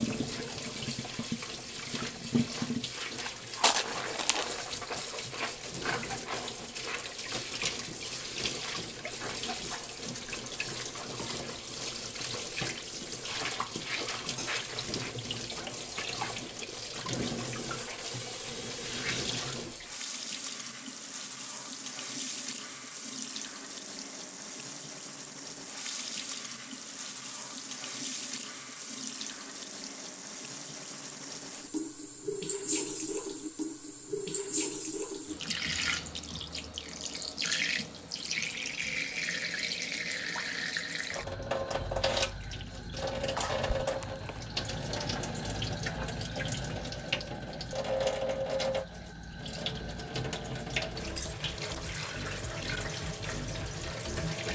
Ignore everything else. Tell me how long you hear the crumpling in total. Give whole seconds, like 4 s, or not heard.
2 s.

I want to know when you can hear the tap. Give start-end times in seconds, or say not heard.
0.0-54.4.